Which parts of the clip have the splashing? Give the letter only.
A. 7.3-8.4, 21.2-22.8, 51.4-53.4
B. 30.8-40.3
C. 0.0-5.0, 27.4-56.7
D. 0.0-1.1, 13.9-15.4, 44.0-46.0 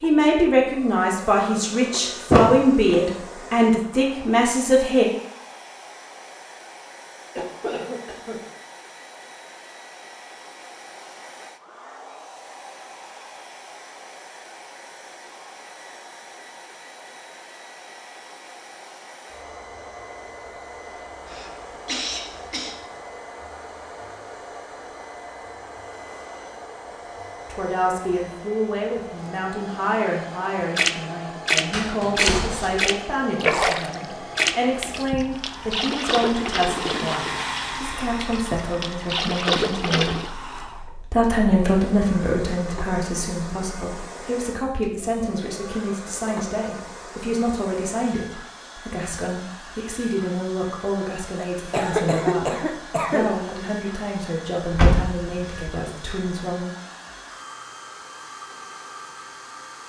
B.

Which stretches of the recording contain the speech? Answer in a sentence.
You can hear the speech from 0.0 to 5.0 s and from 27.4 to 56.7 s.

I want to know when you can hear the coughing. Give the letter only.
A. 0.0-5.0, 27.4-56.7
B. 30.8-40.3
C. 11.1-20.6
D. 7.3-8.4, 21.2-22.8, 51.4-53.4
D.